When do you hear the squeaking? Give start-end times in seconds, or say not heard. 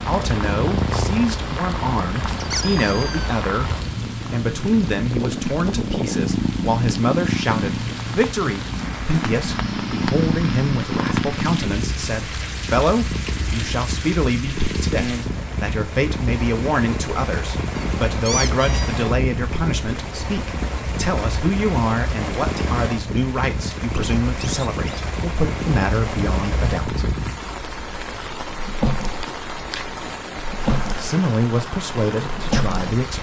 2.4-3.3, 17.8-18.9, 23.6-25.1.